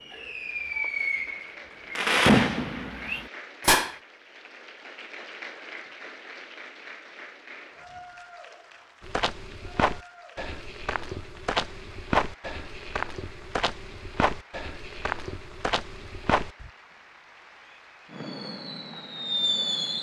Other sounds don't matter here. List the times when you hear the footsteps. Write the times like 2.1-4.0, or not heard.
9.0-16.7.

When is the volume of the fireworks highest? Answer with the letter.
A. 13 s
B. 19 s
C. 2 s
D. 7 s
C.